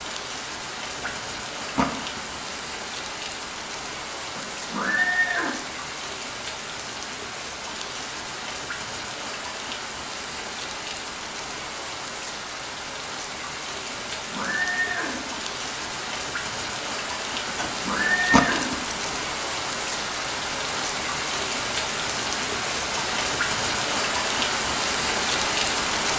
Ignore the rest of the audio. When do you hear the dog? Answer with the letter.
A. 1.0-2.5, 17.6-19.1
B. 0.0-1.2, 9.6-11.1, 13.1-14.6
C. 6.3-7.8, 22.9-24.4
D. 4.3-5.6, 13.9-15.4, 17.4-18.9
A.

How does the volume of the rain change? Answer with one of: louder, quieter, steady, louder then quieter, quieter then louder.
louder.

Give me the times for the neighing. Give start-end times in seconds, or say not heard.
4.3-5.6, 13.9-15.4, 17.4-18.9.